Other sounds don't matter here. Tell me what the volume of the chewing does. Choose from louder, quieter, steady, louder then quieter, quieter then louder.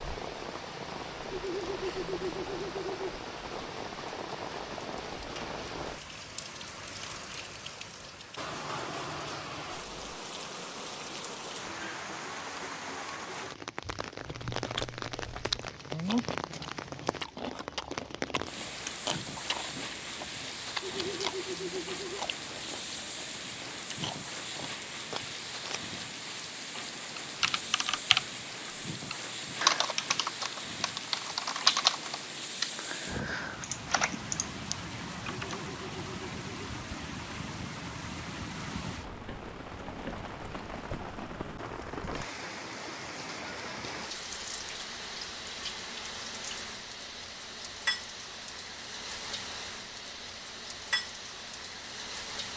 quieter.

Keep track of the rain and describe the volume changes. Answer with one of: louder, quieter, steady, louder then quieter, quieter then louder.
steady.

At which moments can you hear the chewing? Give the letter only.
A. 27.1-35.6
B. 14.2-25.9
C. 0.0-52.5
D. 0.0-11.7
B.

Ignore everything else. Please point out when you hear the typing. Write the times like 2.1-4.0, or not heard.
27.1-35.6.